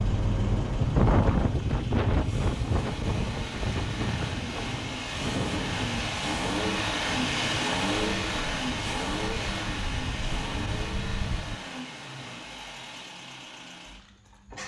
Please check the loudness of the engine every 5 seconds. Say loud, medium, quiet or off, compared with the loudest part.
medium, loud, medium.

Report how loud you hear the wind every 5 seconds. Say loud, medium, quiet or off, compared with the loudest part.
loud, medium, medium.